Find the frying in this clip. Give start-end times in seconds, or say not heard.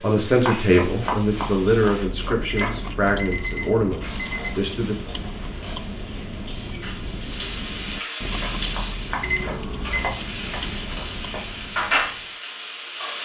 0.0-2.0, 4.0-13.2.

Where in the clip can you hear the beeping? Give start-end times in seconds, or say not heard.
2.5-4.5, 9.2-10.2.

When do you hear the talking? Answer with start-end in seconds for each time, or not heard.
0.0-5.0.